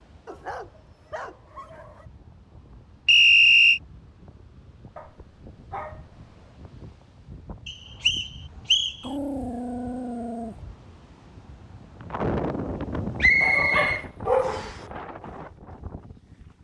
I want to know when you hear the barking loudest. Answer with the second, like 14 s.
14 s.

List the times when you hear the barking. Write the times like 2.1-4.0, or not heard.
0.2-2.0, 5.0-6.0, 9.0-10.6, 13.4-15.0.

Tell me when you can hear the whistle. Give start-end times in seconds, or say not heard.
3.0-3.8, 7.7-8.9, 13.2-14.8.